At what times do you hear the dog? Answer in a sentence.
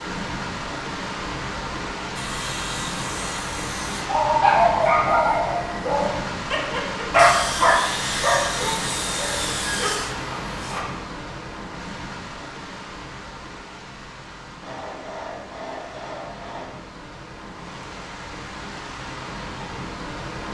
You can hear the dog from 4.0 to 10.8 s.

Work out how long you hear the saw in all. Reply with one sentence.
You can hear the saw for 7 seconds altogether.